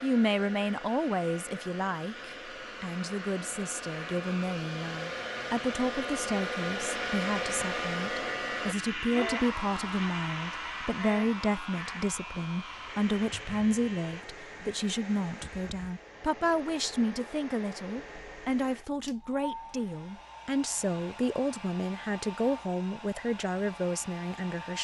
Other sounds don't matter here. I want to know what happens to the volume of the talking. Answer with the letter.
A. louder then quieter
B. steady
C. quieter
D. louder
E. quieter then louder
B.